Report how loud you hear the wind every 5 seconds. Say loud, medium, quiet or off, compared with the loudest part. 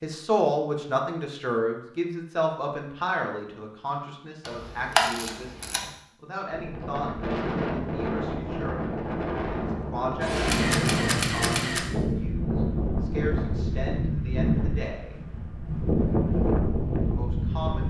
off, loud, loud, loud.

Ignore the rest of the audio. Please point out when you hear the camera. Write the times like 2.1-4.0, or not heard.
4.5-5.8, 10.2-11.8.